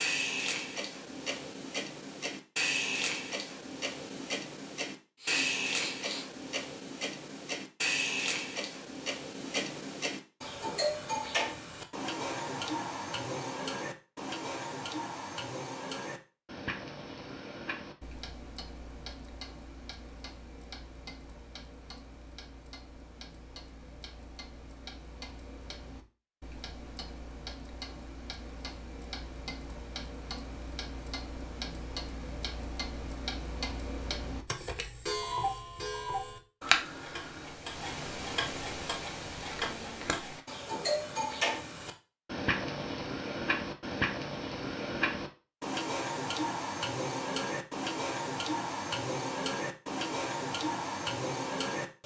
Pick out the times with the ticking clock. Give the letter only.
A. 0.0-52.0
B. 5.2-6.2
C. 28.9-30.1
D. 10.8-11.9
A.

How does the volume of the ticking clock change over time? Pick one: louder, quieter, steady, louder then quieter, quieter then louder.
quieter then louder.